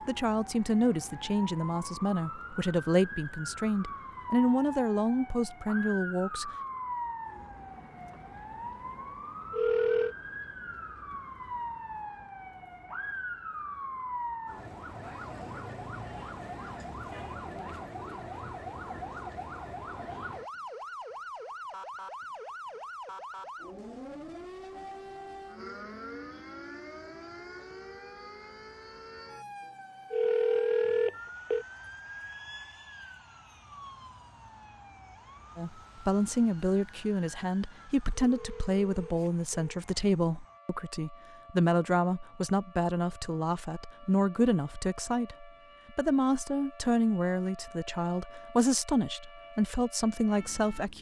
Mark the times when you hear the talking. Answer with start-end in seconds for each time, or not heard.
0.1-6.5, 35.5-50.9.